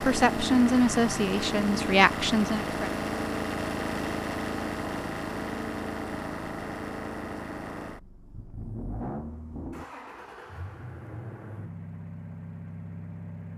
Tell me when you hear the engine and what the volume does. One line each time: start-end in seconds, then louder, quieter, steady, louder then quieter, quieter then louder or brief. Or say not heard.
0.0-13.5 quieter.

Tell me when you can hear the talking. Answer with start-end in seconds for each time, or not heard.
0.0-2.9.